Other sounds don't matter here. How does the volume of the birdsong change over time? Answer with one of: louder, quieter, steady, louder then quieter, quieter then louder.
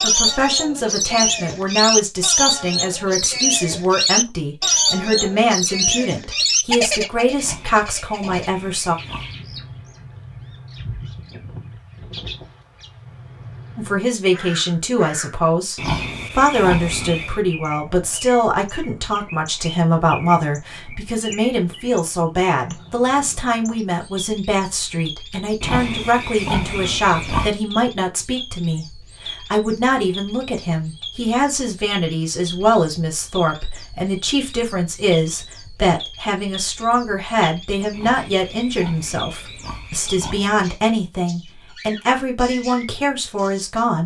quieter.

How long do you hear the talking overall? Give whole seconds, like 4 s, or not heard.
39 s.